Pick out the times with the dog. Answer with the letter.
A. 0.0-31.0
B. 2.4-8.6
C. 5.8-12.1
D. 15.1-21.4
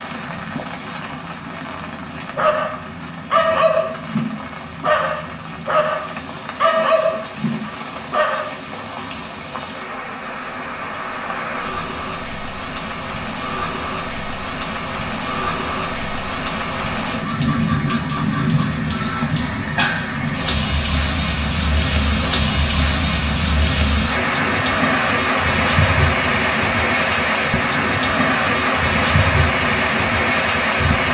B.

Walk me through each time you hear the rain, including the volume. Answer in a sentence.
The rain can be heard from 0.0 to 31.0 s, getting louder.